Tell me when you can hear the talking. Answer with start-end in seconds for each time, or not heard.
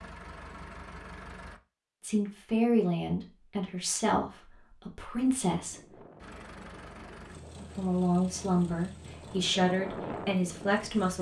2.0-6.0, 7.6-11.1.